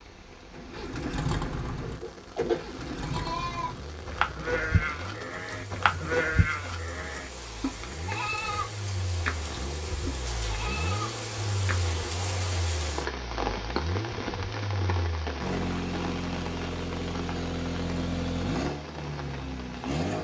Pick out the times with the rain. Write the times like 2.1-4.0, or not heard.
0.0-20.1.